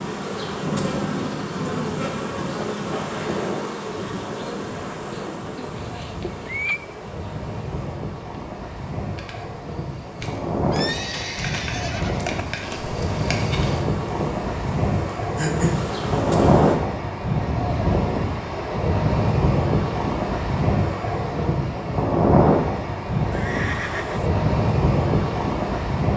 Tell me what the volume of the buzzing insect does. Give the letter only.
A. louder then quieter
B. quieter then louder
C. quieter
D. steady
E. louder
B.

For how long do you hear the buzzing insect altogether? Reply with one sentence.
The buzzing insect can be heard for 17 seconds in total.